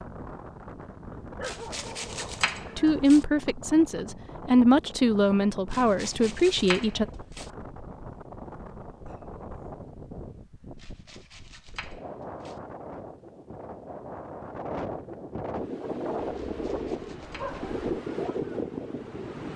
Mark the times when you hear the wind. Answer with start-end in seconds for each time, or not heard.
0.0-19.5.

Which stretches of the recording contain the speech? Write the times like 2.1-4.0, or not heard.
2.8-7.0.